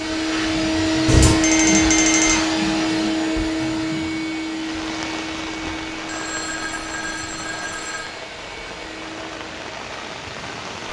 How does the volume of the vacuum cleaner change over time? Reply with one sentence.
The volume of the vacuum cleaner goes down.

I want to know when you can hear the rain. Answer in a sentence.
You can hear the rain from 4.5 to 10.8 s.